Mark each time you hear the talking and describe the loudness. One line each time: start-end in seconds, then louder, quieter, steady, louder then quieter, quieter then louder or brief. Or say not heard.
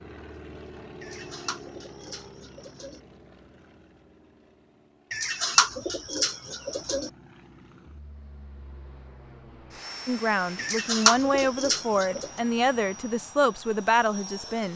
10.1-14.7 steady.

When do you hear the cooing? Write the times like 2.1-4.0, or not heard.
1.0-3.0, 5.1-7.1, 10.6-12.3.